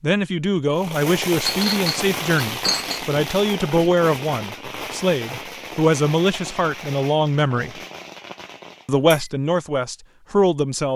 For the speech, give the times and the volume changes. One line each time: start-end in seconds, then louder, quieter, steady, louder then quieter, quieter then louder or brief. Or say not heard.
0.0-7.8 steady
8.8-10.9 brief.